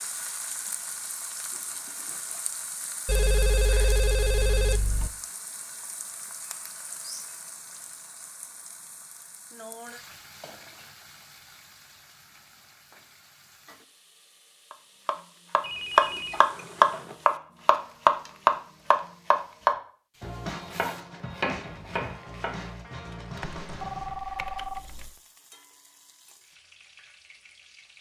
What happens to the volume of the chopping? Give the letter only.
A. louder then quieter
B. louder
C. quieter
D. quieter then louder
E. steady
C.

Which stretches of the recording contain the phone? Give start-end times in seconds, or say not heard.
3.0-5.1, 15.6-17.1, 23.4-25.1.